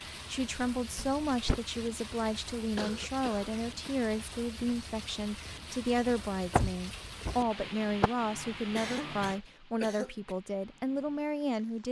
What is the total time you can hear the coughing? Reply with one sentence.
The coughing can be heard for 3 seconds in total.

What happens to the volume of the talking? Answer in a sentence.
The volume of the talking stays about the same.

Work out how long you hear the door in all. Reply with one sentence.
You can hear the door for 2 seconds altogether.